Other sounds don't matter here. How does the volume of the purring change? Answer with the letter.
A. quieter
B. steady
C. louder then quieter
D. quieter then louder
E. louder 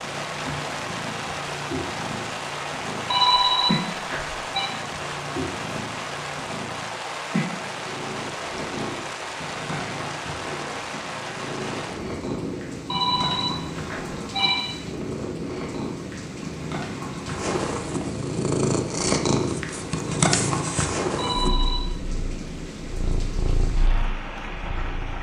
E.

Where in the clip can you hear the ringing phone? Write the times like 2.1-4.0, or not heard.
3.1-4.7, 12.9-14.8, 21.1-21.9.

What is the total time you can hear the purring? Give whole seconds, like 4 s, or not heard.
25 s.